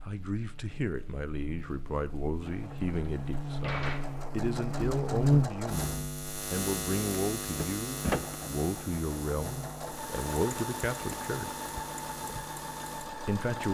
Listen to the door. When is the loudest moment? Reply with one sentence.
The loudest moment of the door is at 8 seconds.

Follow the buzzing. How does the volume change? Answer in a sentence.
The volume of the buzzing goes up, then down.